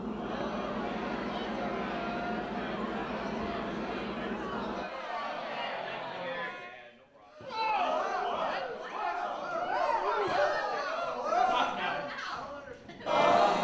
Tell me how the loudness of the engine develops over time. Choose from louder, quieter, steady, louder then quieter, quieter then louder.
steady.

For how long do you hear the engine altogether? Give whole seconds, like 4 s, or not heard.
5 s.